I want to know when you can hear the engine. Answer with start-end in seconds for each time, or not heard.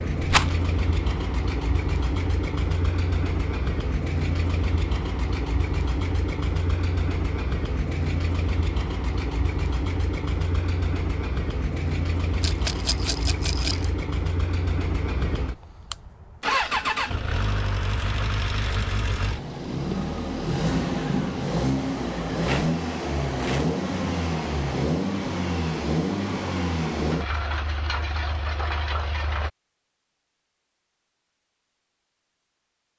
0.0-29.5.